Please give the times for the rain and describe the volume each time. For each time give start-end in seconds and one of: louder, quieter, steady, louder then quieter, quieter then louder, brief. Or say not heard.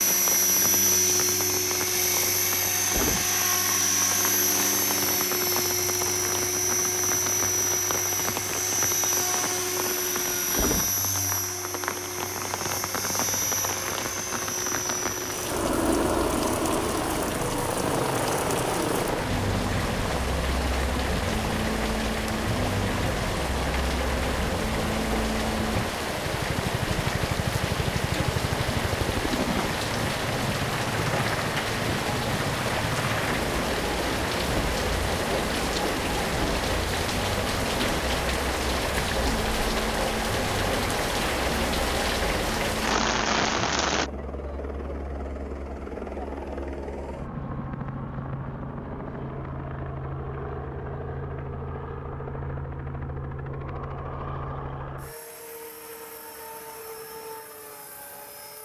0.0-44.1 louder.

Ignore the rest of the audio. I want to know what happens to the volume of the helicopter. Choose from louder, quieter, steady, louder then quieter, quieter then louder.
quieter.